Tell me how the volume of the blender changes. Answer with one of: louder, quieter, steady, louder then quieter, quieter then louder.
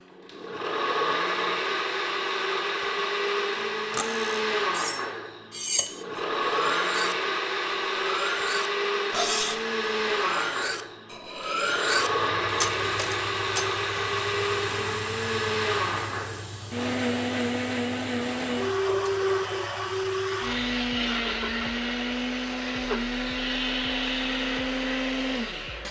steady.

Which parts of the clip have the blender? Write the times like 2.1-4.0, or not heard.
0.0-25.8.